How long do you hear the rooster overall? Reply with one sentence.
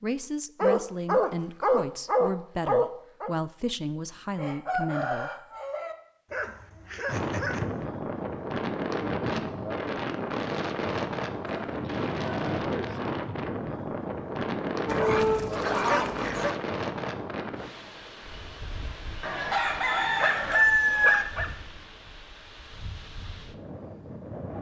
You can hear the rooster for 4 seconds altogether.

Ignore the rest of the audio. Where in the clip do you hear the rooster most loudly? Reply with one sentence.
The loudest moment of the rooster is at 21 seconds.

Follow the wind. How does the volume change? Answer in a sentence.
The loudness of the wind goes down.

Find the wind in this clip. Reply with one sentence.
The wind can be heard from 7.0 to 24.5 s.